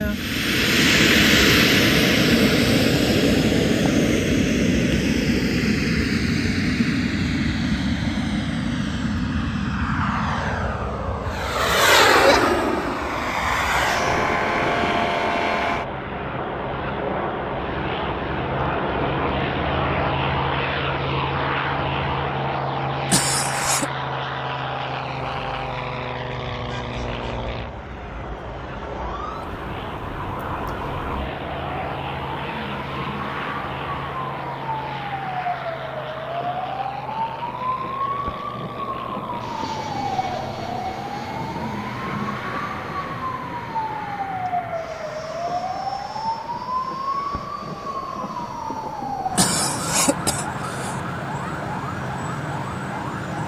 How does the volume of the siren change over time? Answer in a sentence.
The volume of the siren goes up.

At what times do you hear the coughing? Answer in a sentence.
You can hear the coughing from 23.1 to 23.9 s and from 49.4 to 51.0 s.